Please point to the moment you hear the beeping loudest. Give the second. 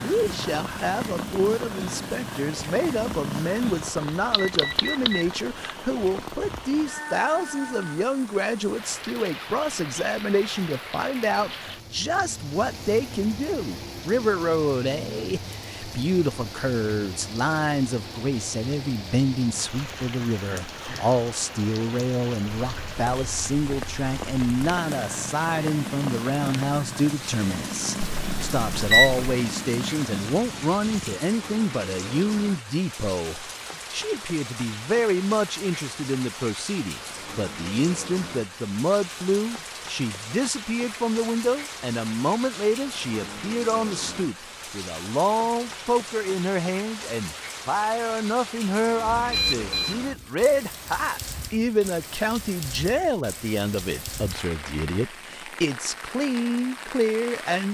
29 s.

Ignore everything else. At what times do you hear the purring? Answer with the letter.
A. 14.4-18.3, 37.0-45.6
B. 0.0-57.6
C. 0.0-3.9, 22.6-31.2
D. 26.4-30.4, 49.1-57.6
C.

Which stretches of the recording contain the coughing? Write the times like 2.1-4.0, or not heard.
not heard.